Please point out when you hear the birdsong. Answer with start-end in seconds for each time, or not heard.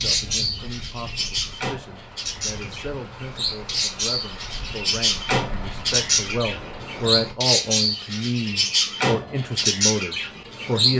0.0-10.9.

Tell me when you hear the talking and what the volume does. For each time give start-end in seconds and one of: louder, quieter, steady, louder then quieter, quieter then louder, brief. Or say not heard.
0.0-10.9 louder.